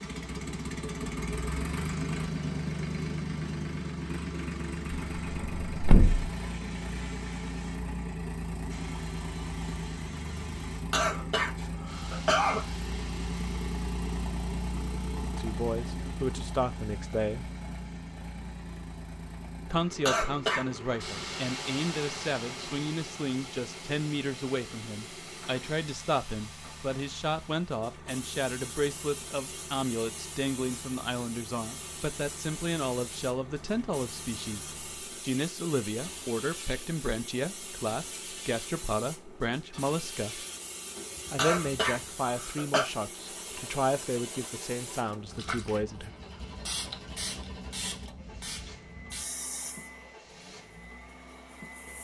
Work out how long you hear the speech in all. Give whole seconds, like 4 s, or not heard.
28 s.